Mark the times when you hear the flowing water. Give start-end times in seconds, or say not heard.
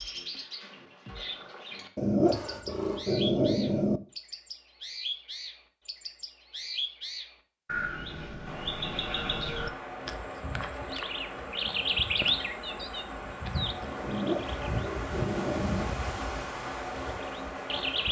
8.4-18.0.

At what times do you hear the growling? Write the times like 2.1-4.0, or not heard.
1.9-4.0, 14.0-15.9.